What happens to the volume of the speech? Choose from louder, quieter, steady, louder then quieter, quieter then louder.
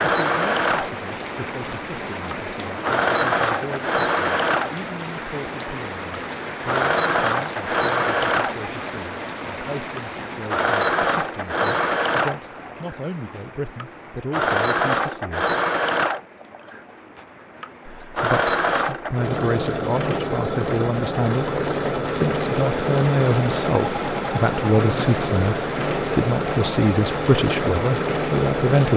louder.